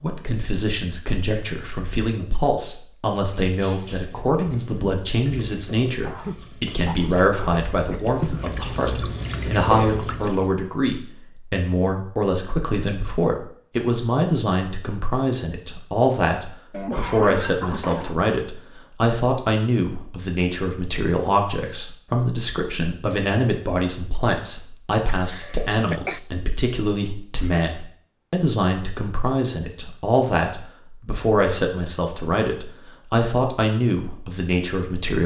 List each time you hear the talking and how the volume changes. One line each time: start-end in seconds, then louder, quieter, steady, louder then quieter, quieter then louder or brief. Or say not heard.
0.0-35.2 steady.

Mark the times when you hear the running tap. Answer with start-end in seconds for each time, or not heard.
3.5-10.5.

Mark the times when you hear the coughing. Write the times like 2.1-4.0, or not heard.
6.0-8.1, 16.7-18.1, 25.1-26.2.